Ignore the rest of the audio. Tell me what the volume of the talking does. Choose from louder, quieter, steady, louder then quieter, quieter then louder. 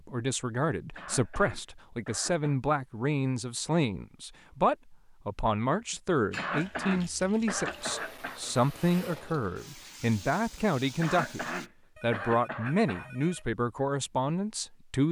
steady.